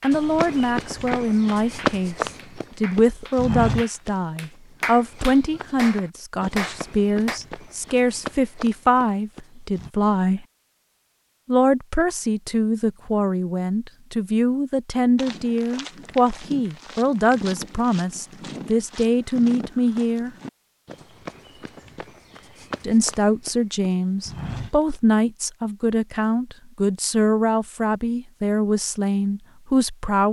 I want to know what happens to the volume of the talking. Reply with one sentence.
The loudness of the talking stays about the same.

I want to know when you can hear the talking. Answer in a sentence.
The talking can be heard from 0.0 to 10.4 s, from 11.4 to 20.3 s and from 22.8 to 30.2 s.